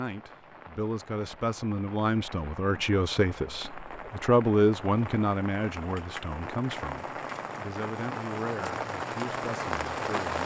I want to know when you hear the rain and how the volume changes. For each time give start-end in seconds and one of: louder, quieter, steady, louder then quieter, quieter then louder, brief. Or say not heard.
0.0-10.4 louder.